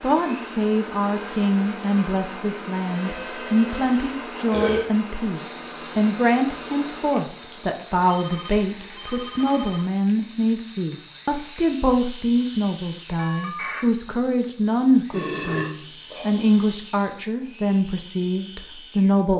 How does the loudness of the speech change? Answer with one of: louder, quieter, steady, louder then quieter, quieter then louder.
steady.